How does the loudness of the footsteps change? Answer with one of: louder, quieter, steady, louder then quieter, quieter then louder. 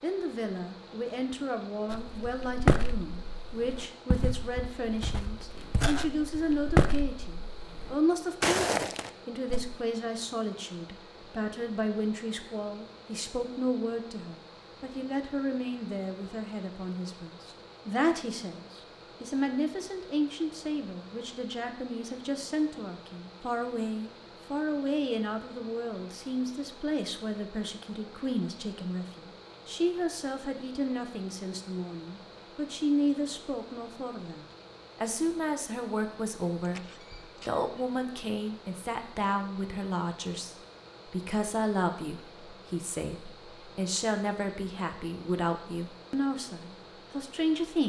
quieter then louder.